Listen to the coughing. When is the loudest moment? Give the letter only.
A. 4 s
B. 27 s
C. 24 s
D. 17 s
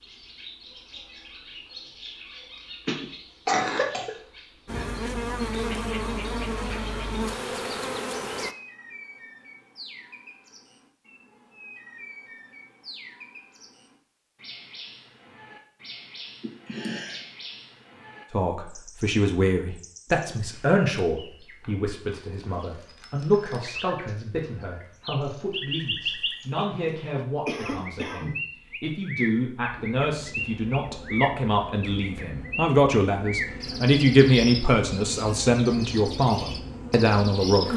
A.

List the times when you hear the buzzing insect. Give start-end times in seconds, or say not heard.
4.7-8.6, 29.9-37.7.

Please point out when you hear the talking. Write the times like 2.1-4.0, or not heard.
18.3-37.7.